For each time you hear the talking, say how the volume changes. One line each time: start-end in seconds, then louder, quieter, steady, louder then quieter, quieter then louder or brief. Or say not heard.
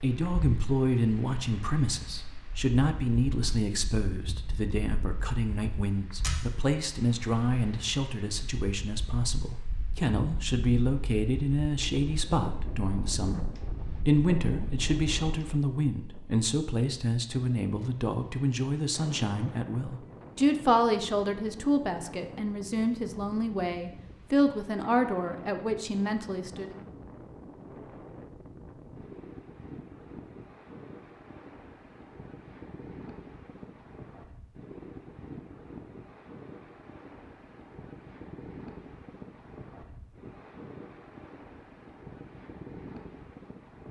0.0-26.8 steady.